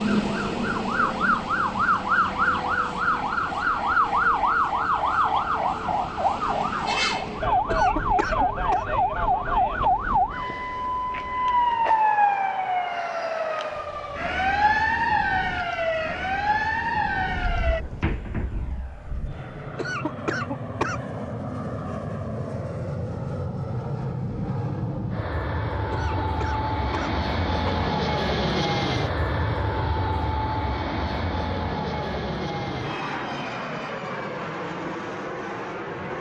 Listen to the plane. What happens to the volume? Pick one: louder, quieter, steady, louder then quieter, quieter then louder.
louder.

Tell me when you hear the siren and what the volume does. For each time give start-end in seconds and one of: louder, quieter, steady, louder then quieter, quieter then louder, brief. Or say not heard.
0.0-17.9 steady.